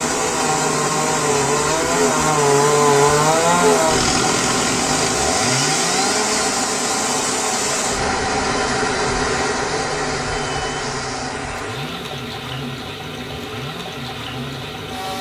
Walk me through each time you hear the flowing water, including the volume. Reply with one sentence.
The flowing water can be heard from 0.0 to 15.1 s, getting quieter.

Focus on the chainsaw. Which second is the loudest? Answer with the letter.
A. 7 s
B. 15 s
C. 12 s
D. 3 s
D.